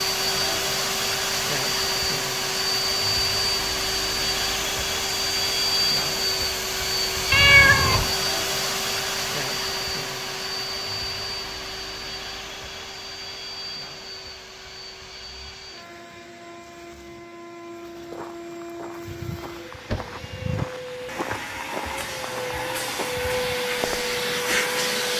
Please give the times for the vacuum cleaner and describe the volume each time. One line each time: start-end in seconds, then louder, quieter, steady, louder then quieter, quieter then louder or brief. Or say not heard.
0.0-25.1 quieter then louder.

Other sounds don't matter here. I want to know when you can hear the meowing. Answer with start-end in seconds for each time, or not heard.
7.3-8.2, 19.1-20.7.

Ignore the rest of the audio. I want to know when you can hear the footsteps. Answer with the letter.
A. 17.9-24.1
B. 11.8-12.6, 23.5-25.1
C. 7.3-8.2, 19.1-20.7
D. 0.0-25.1
A.